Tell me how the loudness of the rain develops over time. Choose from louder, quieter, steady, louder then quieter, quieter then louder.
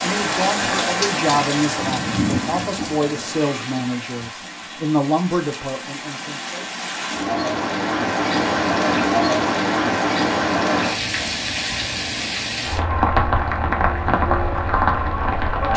quieter then louder.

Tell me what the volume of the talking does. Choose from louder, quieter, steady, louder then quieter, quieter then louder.
steady.